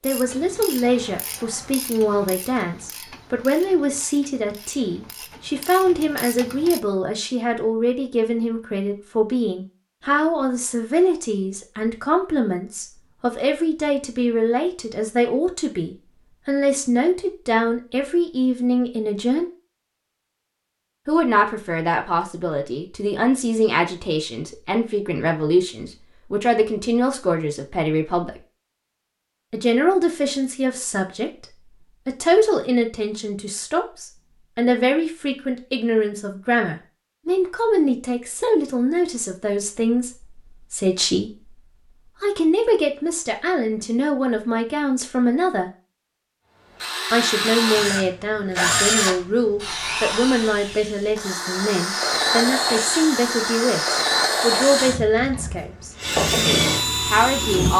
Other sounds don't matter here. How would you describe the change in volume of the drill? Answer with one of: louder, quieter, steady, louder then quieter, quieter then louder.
quieter then louder.